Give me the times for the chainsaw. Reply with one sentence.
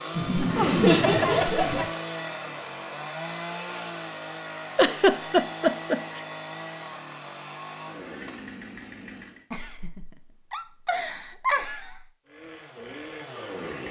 The chainsaw can be heard from 0.0 to 9.4 s and from 12.2 to 13.8 s.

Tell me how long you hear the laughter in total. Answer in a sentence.
The laughter can be heard for 6 seconds in total.